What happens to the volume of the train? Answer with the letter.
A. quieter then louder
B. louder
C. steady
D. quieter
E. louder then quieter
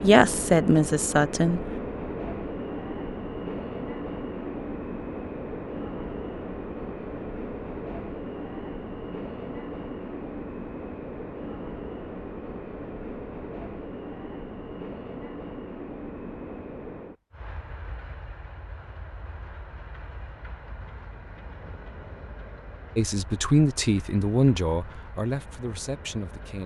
D.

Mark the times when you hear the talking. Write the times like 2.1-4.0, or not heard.
0.0-1.6, 22.9-26.6.